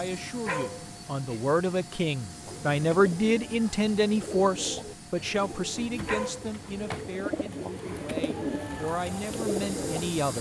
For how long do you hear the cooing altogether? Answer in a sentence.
You can hear the cooing for 8 seconds altogether.